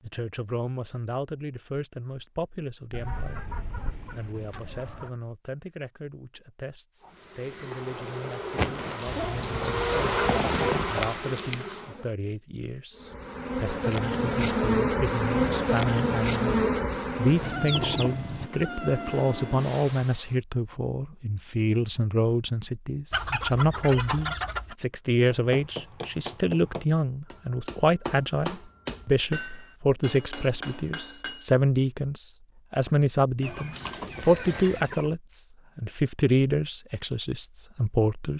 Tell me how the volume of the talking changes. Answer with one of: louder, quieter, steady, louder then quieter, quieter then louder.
louder.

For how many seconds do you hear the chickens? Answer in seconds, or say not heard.
9 s.